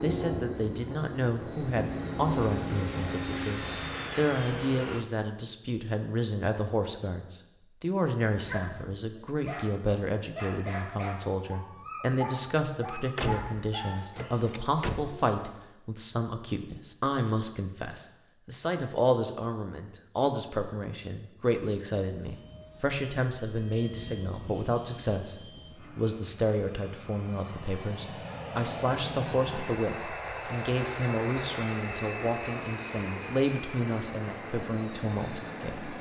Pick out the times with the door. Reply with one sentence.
The door can be heard from 13.2 to 15.6 s.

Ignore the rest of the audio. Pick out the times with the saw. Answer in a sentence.
You can't hear the saw here.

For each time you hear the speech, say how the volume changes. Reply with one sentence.
The speech can be heard from 0.0 to 35.9 s, at a steady volume.